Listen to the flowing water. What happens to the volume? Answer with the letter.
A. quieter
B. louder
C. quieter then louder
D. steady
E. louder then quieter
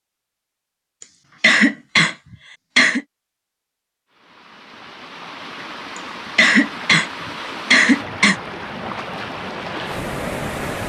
B.